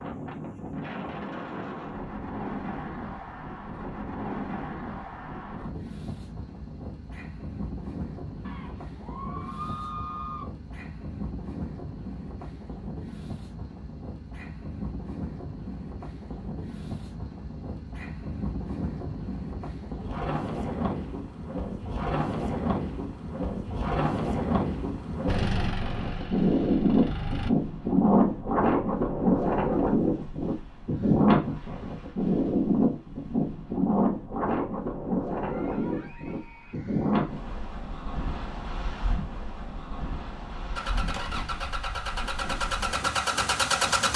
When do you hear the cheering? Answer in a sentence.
The cheering can be heard from 8.4 to 10.4 s and from 35.4 to 37.3 s.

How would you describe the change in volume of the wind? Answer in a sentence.
The loudness of the wind goes up, then down.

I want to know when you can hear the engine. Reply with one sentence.
You can hear the engine from 25.2 to 27.5 s and from 40.8 to 44.1 s.